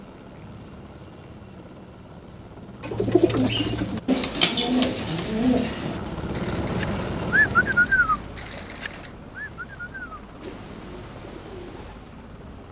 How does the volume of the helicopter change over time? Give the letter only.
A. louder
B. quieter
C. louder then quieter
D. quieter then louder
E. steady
C.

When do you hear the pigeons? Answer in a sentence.
The pigeons can be heard from 2.8 to 12.1 s.